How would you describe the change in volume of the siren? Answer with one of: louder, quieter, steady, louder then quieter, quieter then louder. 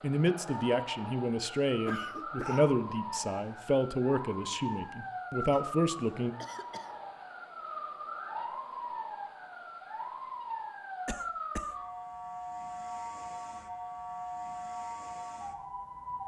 steady.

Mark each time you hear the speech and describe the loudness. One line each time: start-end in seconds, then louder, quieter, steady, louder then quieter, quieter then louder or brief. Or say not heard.
0.0-6.3 steady.